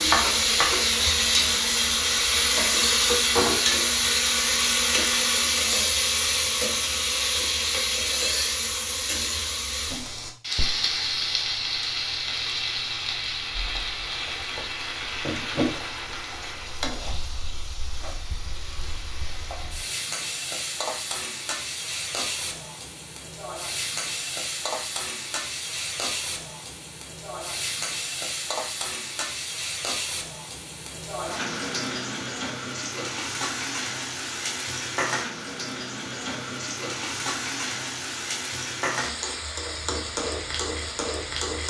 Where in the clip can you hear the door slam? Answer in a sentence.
The door slam can't be heard in this clip.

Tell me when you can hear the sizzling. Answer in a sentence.
You can hear the sizzling from 0.0 to 41.6 s.